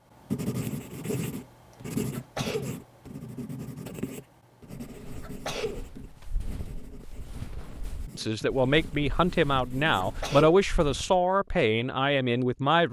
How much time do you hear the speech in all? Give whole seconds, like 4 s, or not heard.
5 s.